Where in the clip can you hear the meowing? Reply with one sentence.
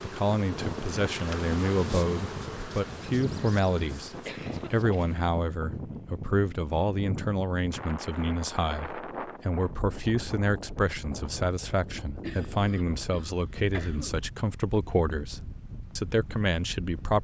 The meowing can't be heard in this clip.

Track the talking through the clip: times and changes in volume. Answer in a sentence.
You can hear the talking from 0.0 to 17.1 s, at a steady volume.